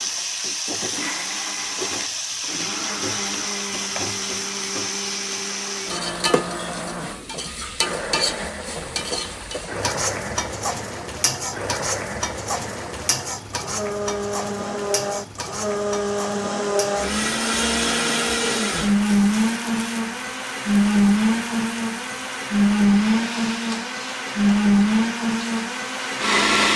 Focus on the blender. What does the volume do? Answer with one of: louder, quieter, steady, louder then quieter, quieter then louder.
louder.